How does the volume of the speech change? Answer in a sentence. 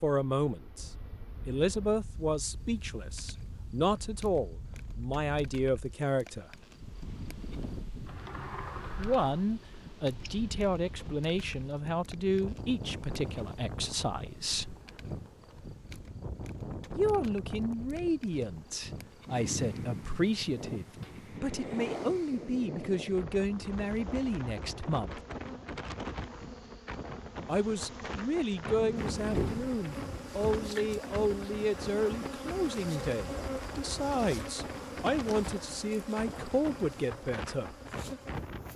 The volume of the speech stays about the same.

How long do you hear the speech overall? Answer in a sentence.
The speech can be heard for 31 seconds in total.